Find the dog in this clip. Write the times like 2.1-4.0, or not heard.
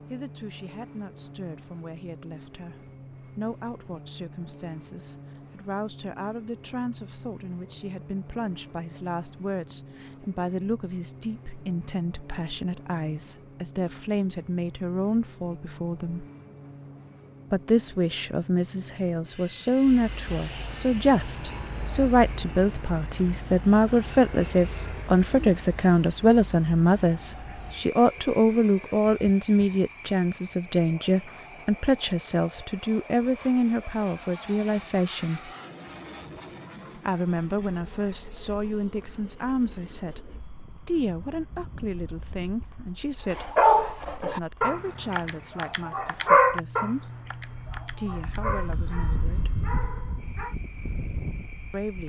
43.3-50.5.